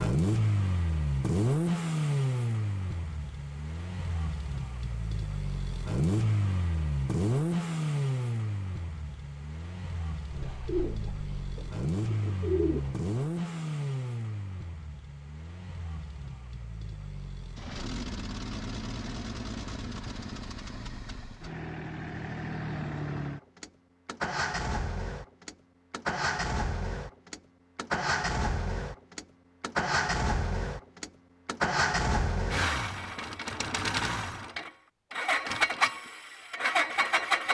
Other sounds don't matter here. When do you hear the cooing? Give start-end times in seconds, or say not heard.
10.3-12.9.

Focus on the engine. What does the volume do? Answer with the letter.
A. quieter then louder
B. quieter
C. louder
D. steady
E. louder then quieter
A.